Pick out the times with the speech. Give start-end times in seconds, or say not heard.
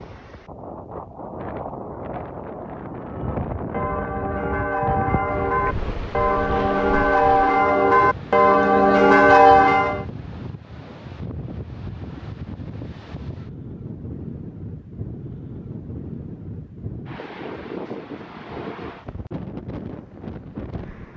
not heard.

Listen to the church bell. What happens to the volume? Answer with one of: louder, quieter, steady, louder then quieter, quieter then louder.
louder.